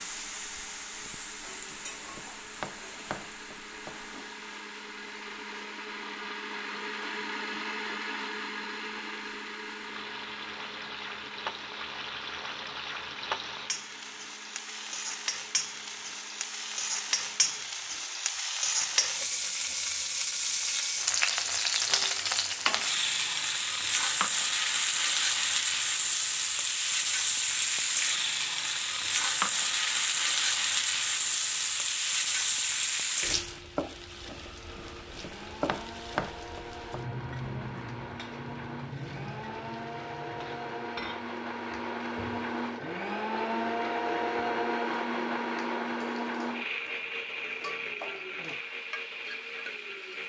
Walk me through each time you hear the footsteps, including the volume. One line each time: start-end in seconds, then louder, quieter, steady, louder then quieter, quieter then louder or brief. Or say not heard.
not heard.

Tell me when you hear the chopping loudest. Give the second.
36 s.